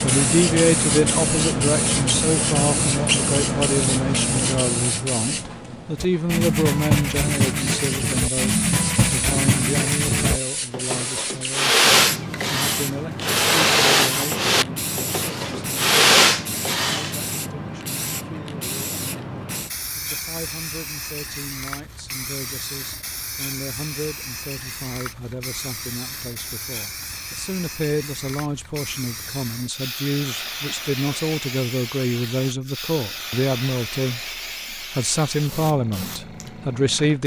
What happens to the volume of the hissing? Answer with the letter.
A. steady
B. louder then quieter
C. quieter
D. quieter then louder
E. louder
C.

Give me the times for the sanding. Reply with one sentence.
The sanding can be heard from 6.0 to 17.1 s.